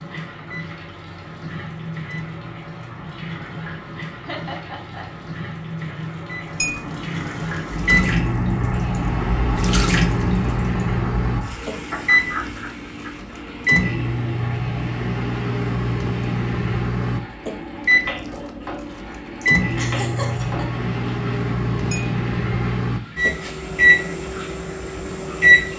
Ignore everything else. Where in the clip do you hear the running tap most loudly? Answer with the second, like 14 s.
10 s.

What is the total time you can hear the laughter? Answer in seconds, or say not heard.
3 s.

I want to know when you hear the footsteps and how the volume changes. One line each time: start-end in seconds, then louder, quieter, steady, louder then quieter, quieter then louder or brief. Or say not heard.
not heard.